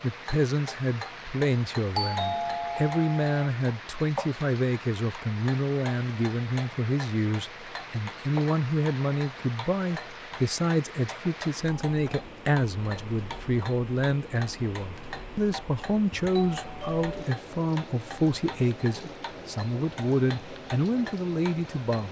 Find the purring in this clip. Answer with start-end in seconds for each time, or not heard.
not heard.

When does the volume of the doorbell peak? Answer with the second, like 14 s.
2 s.